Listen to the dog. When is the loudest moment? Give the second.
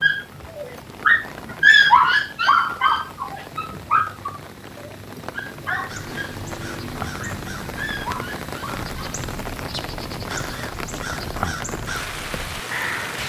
2 s.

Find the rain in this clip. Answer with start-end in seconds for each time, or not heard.
0.0-13.2.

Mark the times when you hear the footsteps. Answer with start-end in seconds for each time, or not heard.
not heard.